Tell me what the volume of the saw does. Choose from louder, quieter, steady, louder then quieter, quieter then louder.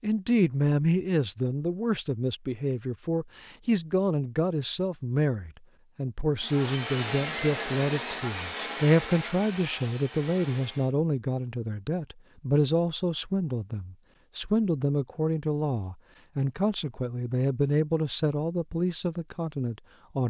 quieter.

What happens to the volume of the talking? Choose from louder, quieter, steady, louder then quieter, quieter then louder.
steady.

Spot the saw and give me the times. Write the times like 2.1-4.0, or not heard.
6.3-10.9.